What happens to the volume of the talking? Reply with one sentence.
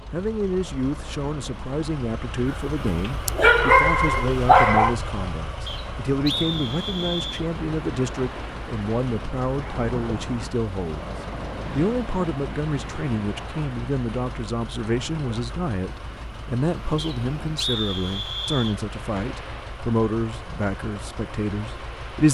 The loudness of the talking stays about the same.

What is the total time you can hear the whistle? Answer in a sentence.
You can hear the whistle for 4 seconds altogether.